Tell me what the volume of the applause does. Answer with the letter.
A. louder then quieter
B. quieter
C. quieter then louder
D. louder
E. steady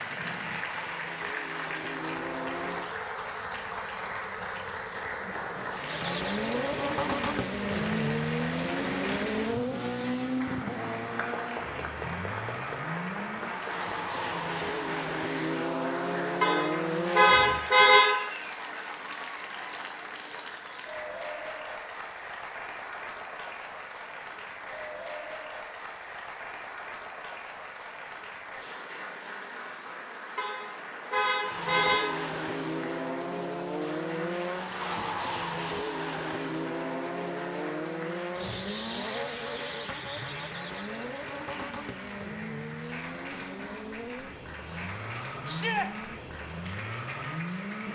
B.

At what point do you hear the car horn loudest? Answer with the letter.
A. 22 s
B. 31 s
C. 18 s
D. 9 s
C.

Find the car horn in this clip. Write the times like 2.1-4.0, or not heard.
16.4-18.2, 30.4-32.1.